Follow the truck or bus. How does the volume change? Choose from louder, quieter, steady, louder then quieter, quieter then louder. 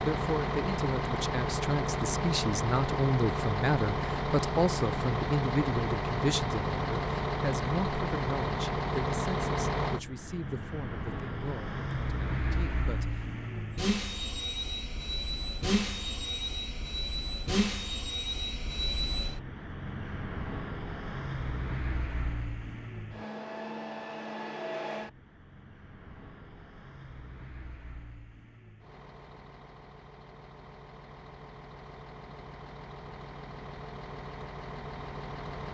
quieter.